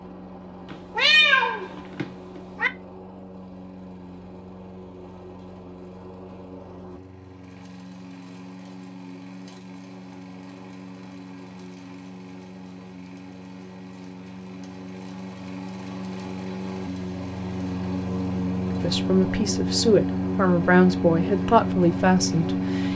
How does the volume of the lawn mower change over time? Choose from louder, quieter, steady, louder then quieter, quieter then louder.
louder.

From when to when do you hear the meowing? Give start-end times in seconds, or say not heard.
0.7-2.7.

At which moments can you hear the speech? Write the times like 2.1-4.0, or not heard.
18.7-22.9.